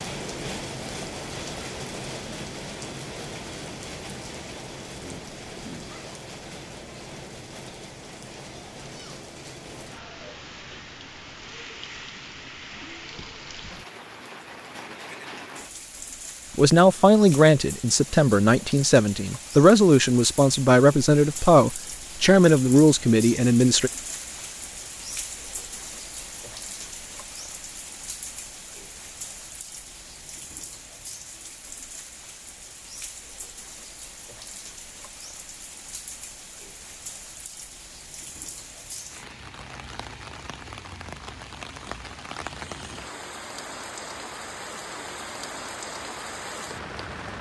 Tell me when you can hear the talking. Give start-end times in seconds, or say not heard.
16.6-23.9.